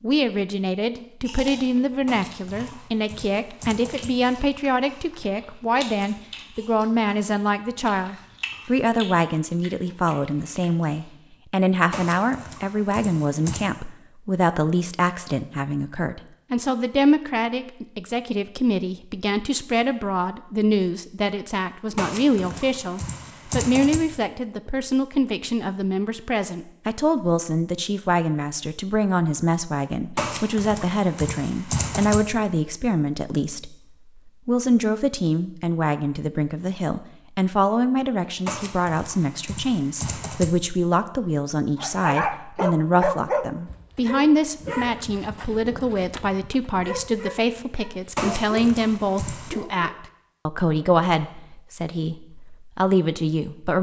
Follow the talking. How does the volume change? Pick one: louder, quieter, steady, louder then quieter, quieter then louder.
steady.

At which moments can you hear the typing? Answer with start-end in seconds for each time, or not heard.
2.0-4.1, 11.9-13.7, 21.9-24.0, 30.1-32.2, 38.5-40.5, 48.1-49.6.